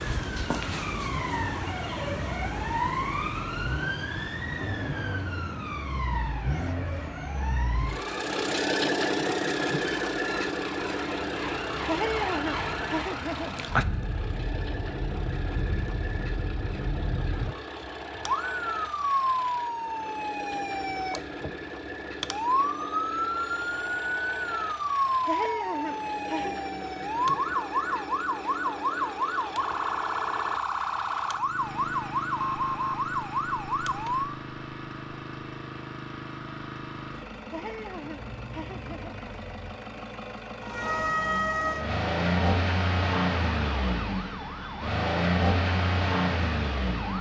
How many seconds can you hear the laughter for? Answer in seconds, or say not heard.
5 s.